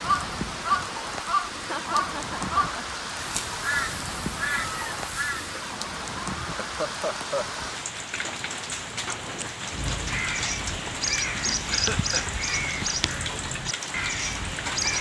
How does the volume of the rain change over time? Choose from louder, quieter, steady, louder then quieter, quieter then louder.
steady.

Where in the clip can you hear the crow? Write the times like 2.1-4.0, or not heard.
0.0-5.5, 8.9-14.9.